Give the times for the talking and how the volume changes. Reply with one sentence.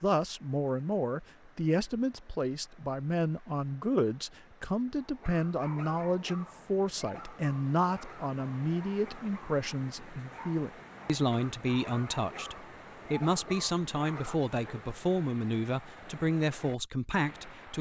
The talking can be heard from 0.0 to 17.7 s, at a steady volume.